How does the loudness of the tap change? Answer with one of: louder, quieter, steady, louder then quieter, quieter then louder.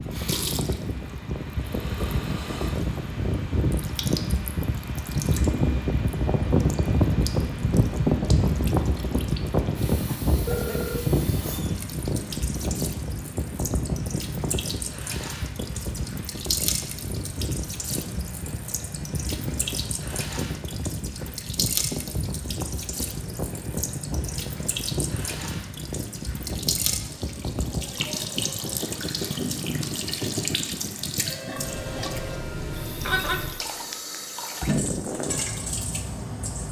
louder.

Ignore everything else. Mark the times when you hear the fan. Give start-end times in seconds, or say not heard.
0.0-36.6.